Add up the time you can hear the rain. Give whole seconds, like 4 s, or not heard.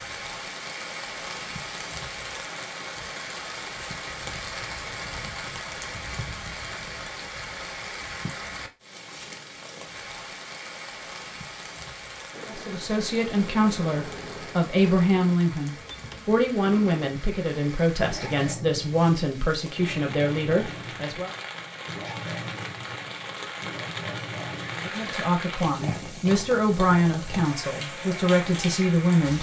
29 s.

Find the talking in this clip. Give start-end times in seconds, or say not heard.
12.4-21.3, 24.8-29.3.